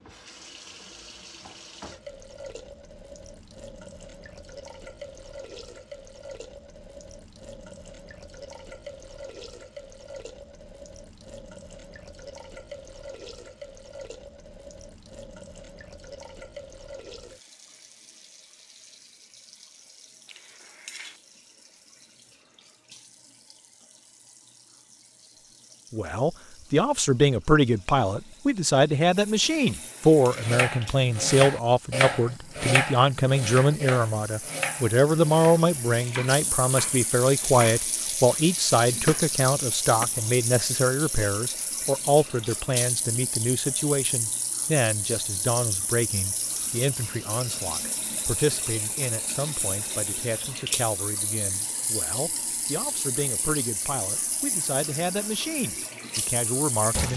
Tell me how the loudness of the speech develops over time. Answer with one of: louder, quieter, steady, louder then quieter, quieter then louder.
quieter.